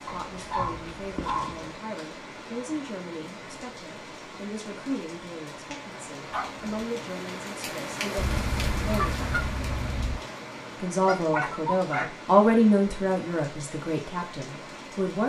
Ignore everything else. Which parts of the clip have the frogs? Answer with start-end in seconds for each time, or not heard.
not heard.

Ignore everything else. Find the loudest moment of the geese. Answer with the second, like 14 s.
9 s.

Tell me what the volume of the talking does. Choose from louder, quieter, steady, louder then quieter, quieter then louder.
louder.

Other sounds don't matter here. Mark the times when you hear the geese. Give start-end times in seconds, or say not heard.
8.2-10.2.